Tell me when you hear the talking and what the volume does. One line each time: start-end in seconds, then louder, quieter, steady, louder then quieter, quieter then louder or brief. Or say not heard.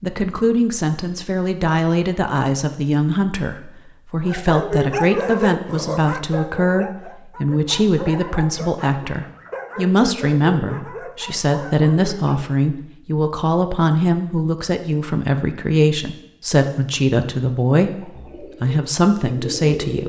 0.0-20.0 steady.